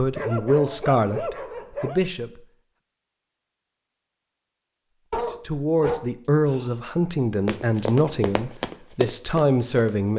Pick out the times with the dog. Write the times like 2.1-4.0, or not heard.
0.1-2.0, 5.1-6.8.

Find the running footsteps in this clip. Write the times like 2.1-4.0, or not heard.
7.5-10.1.